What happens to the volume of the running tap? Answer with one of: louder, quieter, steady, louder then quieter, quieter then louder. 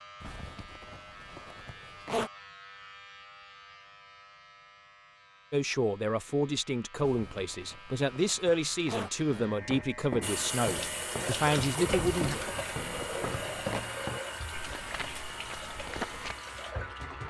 quieter.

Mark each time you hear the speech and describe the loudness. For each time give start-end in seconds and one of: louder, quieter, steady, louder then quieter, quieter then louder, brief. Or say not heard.
5.5-12.3 steady.